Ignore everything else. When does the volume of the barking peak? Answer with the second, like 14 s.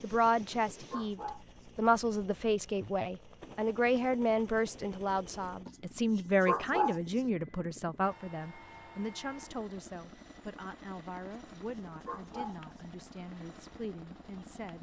7 s.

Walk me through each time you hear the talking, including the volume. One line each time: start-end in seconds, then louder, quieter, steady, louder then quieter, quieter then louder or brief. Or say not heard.
0.0-14.7 quieter.